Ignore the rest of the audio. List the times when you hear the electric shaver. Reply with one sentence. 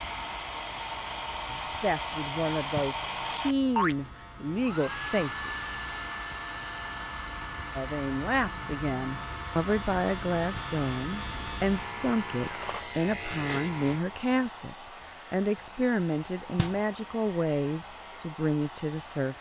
You can hear the electric shaver from 0.0 to 14.1 s.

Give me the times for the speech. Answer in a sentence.
The speech can be heard from 1.5 to 5.5 s and from 7.8 to 19.3 s.